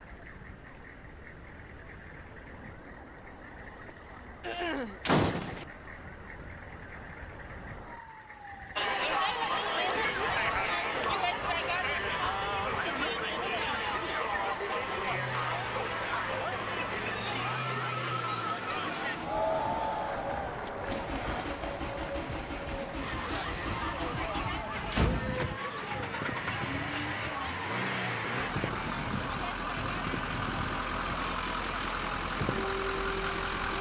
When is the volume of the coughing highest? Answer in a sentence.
The loudest moment of the coughing is at 5 seconds.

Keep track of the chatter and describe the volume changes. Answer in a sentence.
The loudness of the chatter goes down.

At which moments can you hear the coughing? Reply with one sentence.
The coughing can be heard from 4.4 to 5.0 s and from 21.1 to 21.6 s.